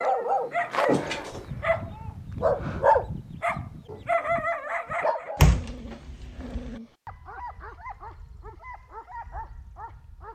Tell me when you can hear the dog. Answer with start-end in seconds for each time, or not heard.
0.0-10.3.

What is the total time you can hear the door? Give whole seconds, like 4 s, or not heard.
2 s.